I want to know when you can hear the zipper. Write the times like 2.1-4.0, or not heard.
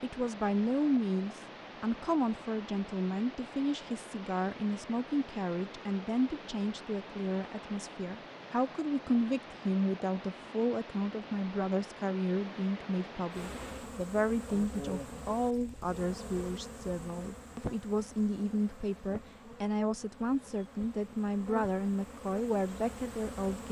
not heard.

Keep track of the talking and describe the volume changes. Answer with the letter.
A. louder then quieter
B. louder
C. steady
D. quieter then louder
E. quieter
C.